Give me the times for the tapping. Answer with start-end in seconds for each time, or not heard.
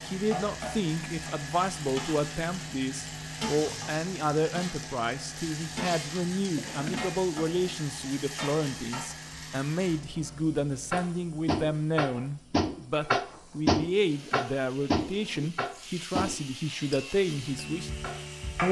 10.9-18.2.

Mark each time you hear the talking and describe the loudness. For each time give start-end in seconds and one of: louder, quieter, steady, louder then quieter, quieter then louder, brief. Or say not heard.
0.0-17.9 steady.